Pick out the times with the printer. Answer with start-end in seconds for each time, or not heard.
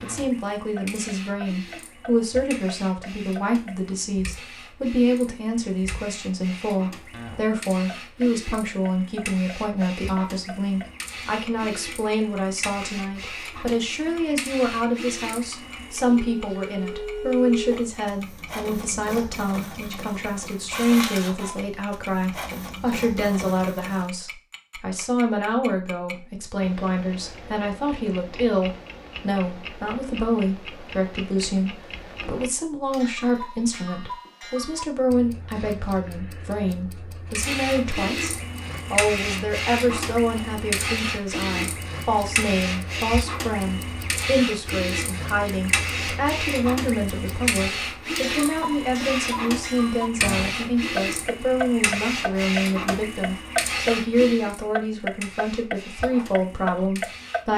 0.0-24.1, 37.4-57.5.